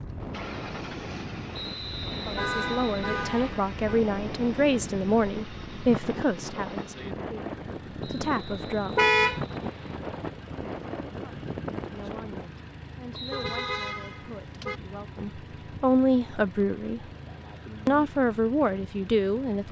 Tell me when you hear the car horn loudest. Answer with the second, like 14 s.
9 s.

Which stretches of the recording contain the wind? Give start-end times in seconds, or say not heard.
0.0-12.4.